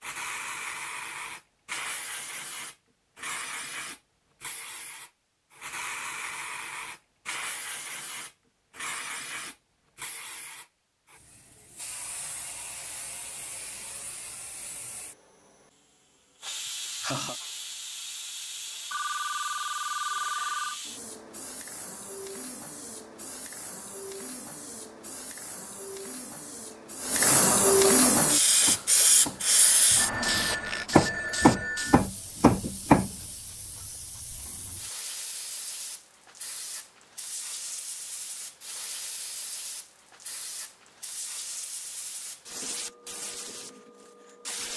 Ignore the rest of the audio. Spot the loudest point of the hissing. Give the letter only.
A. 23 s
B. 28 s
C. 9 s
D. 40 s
B.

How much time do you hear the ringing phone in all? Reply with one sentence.
You can hear the ringing phone for 4 seconds altogether.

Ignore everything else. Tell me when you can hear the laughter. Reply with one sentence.
You can hear the laughter from 16.5 to 17.4 s and from 26.7 to 28.1 s.